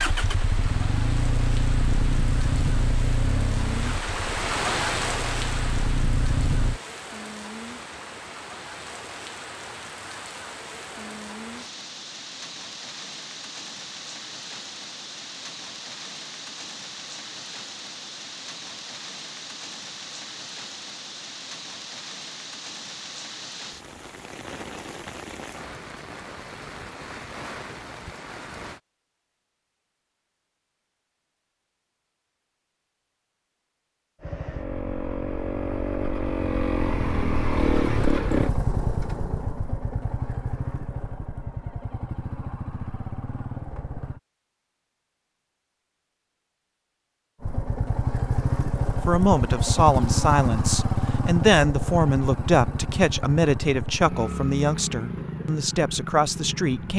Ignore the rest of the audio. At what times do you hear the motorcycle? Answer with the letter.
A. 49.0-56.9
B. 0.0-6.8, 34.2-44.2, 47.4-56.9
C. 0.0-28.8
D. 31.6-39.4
B.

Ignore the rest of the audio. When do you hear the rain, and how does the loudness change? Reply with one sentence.
You can hear the rain from 0.0 to 28.8 s, getting quieter.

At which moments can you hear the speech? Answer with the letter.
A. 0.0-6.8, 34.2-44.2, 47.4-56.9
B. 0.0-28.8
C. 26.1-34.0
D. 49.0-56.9
D.